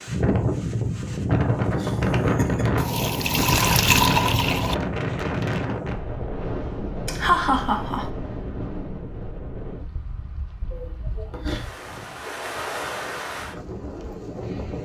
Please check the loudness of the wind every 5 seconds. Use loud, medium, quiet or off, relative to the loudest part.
loud, medium, medium.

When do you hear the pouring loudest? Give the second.
4 s.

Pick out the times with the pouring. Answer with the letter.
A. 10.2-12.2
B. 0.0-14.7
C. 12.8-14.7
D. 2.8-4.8
D.